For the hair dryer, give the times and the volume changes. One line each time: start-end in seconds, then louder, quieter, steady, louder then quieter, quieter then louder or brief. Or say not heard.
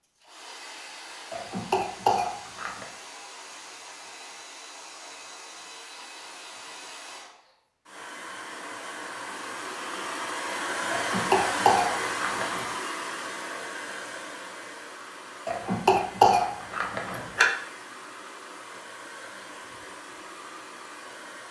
0.0-21.4 louder then quieter.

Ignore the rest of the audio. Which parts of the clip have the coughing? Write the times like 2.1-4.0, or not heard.
1.3-2.9, 10.9-12.7, 15.4-17.5.